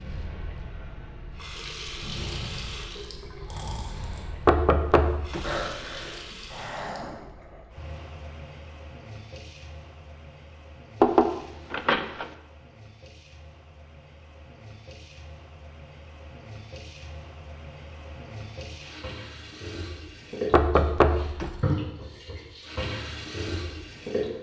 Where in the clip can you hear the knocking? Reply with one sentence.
You can hear the knocking from 4.5 to 5.7 s, from 11.0 to 12.2 s and from 20.5 to 21.7 s.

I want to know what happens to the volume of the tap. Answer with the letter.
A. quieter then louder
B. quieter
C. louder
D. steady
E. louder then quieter
A.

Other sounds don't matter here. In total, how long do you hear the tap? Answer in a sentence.
The tap can be heard for 24 seconds in total.